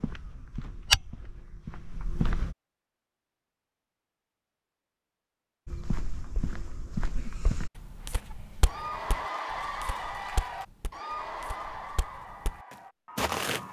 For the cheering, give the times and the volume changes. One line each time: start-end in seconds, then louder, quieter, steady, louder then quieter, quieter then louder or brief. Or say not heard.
8.3-13.6 quieter.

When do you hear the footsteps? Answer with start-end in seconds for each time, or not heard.
0.0-2.5, 5.7-13.6.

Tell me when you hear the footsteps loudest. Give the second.
1 s.